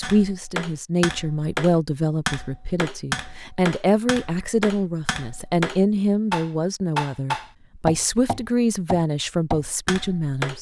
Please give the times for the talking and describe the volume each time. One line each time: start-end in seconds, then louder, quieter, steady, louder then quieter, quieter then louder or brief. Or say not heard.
0.0-10.5 steady.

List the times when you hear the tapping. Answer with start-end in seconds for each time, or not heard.
0.0-10.5.